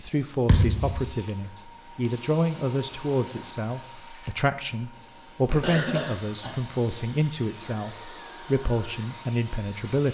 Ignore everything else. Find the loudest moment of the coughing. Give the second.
6 s.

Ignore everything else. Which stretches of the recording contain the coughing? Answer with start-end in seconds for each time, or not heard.
5.4-7.0.